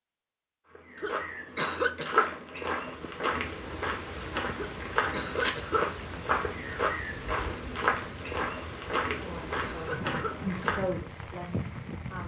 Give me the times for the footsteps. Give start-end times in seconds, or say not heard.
0.7-11.0.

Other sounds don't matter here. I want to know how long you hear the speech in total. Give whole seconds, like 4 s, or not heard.
3 s.